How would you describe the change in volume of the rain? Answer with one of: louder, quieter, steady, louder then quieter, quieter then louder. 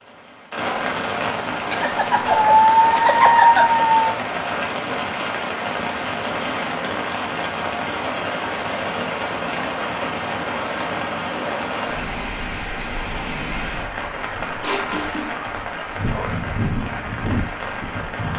steady.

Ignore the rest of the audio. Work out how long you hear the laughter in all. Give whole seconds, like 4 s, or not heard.
2 s.